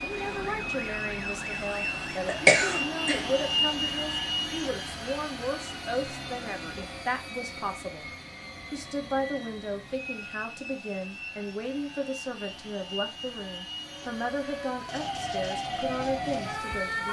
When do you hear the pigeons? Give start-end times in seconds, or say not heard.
not heard.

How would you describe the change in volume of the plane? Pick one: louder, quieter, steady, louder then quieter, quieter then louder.
quieter.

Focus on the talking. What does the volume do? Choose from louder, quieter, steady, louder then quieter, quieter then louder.
steady.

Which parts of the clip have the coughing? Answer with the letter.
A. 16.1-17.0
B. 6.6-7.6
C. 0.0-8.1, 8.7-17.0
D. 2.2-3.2
D.